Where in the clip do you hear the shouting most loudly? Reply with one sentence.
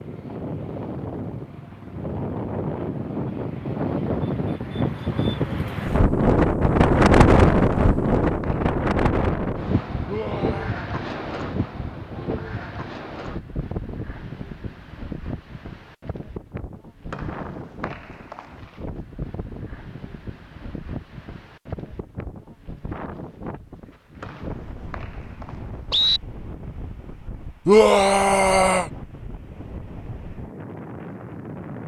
The volume of the shouting peaks at 28 seconds.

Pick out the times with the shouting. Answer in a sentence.
You can hear the shouting from 10.1 to 10.8 s and from 27.6 to 28.9 s.